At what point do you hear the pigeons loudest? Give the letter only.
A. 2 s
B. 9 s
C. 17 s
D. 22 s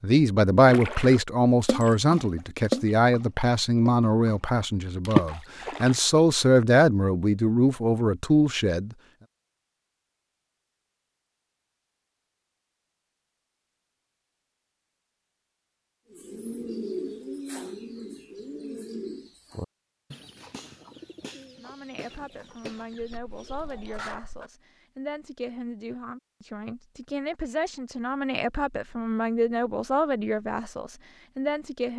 C.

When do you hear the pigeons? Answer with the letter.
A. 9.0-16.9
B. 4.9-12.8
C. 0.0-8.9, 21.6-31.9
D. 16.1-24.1
D.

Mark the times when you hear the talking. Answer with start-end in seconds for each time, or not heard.
0.0-8.9, 21.6-31.9.